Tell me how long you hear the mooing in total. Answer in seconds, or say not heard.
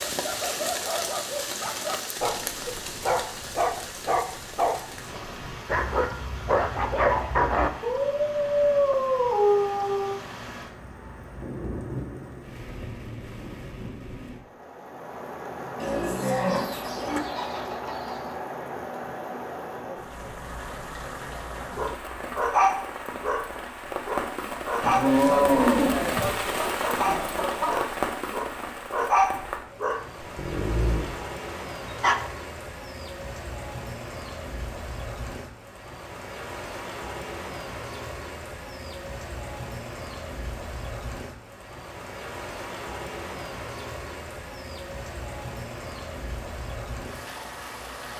3 s.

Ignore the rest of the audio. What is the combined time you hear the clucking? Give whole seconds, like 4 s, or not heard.
3 s.